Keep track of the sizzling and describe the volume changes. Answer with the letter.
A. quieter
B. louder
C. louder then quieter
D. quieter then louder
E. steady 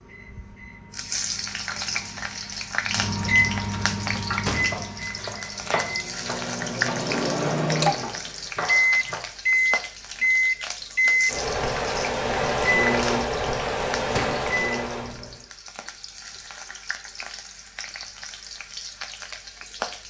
A.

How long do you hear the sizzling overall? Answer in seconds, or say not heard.
20 s.